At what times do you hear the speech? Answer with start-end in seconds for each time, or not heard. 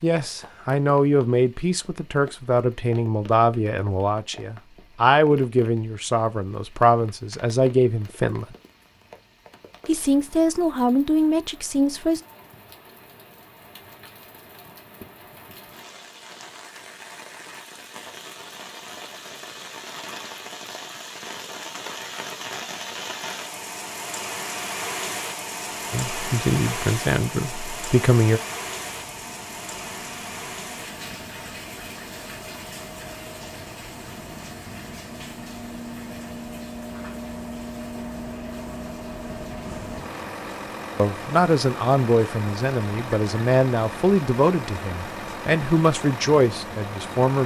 0.0-8.4, 9.8-12.2, 25.9-28.4, 41.0-47.4.